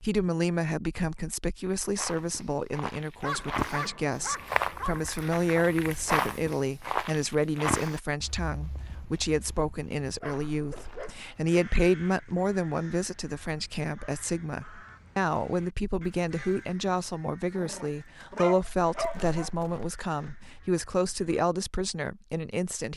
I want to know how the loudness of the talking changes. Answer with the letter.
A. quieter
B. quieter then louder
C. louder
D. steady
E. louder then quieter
D.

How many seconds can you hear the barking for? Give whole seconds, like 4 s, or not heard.
5 s.